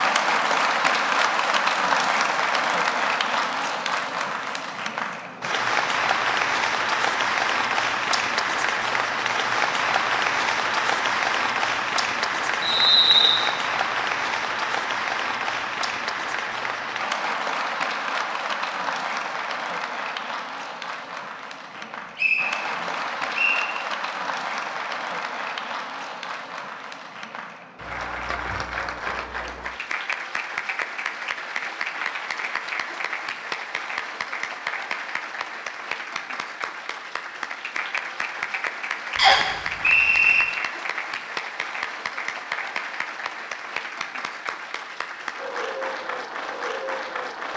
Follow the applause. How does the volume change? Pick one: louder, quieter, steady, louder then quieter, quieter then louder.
quieter.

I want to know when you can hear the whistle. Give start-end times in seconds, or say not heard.
12.6-13.4, 21.8-23.6, 39.1-40.5.